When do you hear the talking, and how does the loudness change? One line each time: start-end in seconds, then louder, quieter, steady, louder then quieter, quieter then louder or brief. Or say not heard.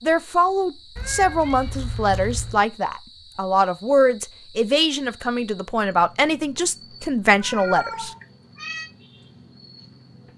0.0-8.1 steady.